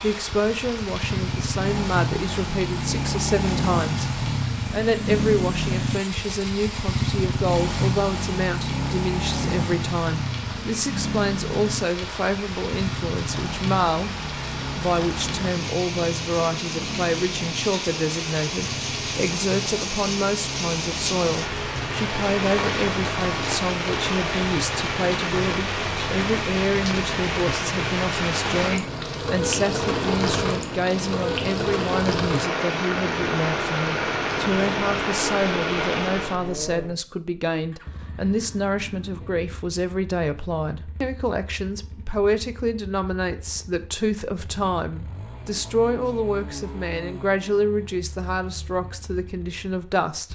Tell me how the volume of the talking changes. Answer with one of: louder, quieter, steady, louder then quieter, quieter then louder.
steady.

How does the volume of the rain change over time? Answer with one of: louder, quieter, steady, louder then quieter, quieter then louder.
louder.